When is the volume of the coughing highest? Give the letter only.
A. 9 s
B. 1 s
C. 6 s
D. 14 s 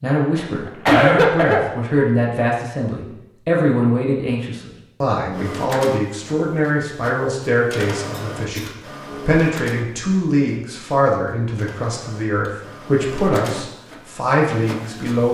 B.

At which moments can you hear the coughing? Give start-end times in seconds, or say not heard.
0.3-2.1, 8.1-8.7.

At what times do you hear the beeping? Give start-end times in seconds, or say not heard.
not heard.